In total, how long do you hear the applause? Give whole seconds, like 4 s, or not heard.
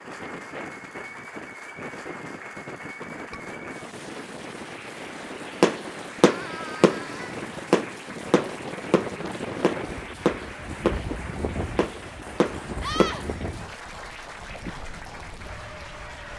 16 s.